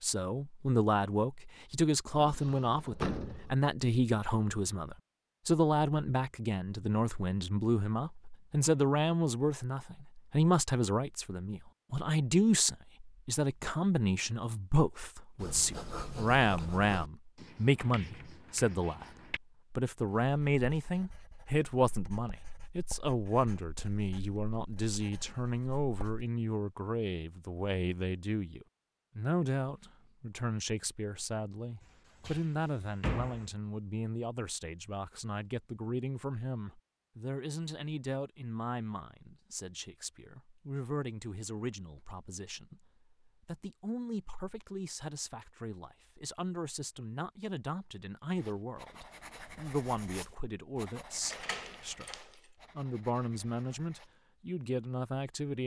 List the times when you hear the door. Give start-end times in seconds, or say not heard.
2.1-3.5, 32.2-33.5, 51.3-52.3.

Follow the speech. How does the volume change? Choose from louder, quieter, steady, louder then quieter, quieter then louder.
quieter.